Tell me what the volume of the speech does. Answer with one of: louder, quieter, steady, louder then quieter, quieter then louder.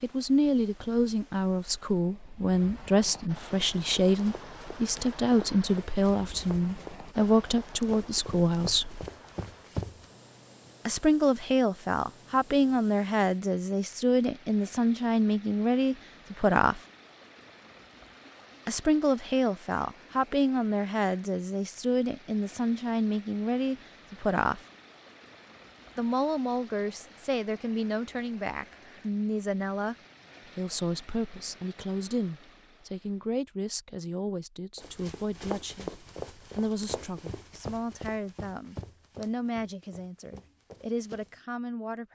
quieter.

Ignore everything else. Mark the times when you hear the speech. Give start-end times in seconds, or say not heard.
0.0-9.1, 10.8-16.8, 18.6-24.6, 25.9-29.9, 30.6-42.1.